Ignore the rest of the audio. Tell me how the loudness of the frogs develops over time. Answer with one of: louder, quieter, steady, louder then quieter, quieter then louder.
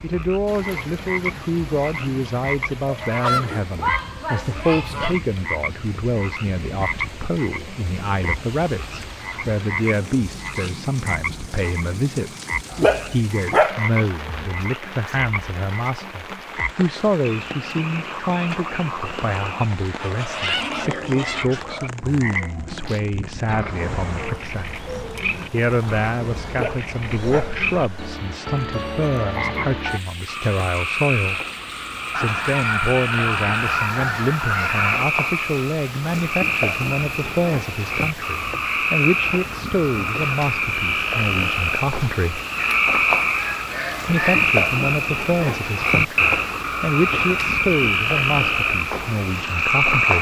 louder.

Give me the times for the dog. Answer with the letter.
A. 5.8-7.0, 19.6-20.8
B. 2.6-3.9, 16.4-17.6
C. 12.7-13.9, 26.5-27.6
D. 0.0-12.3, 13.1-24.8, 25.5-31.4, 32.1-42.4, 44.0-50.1
C.